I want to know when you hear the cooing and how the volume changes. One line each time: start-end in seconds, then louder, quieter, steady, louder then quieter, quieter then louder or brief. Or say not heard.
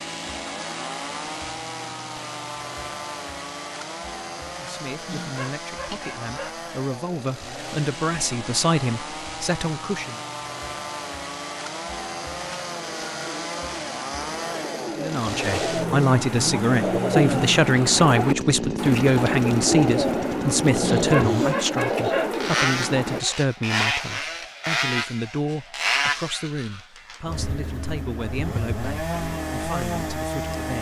12.4-23.2 louder.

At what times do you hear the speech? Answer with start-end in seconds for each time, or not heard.
4.5-10.2, 14.9-30.7.